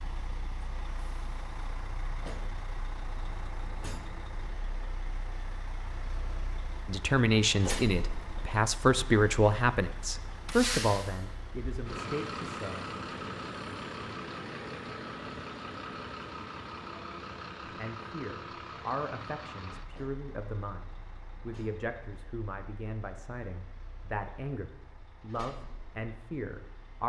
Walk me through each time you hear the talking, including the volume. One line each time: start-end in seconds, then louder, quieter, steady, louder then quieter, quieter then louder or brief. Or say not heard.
6.8-12.9 quieter
17.8-27.0 steady.